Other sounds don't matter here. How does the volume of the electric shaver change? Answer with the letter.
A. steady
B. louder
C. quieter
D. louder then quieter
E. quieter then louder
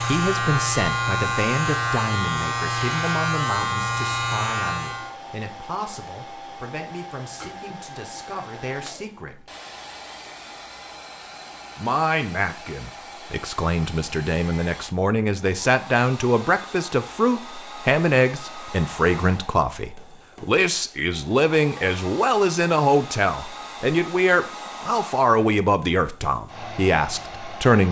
A.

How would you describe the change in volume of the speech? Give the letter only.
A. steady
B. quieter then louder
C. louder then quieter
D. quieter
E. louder
B.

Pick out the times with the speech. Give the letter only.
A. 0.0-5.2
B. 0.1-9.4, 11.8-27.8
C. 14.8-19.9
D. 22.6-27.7
B.